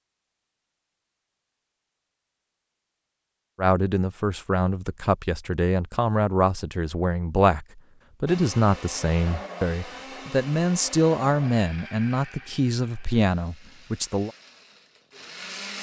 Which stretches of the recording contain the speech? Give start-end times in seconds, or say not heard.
3.5-14.3.